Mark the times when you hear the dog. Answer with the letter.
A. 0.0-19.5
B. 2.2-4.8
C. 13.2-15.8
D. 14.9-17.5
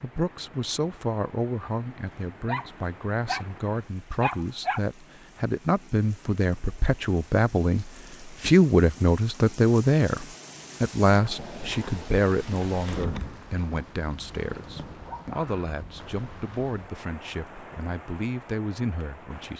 B.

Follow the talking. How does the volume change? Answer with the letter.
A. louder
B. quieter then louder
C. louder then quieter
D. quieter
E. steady
C.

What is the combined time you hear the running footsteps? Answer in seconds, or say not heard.
not heard.